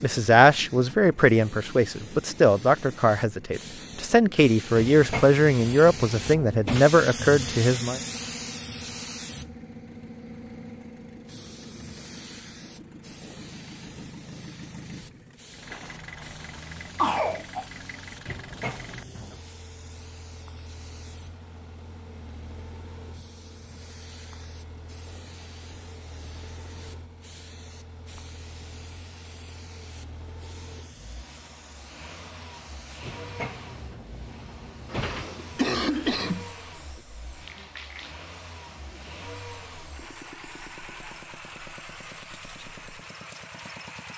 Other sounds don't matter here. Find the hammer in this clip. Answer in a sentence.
You can't hear the hammer here.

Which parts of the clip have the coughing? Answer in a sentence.
The coughing can be heard from 15.7 to 17.6 s and from 34.9 to 36.5 s.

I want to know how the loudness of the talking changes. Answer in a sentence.
The loudness of the talking stays about the same.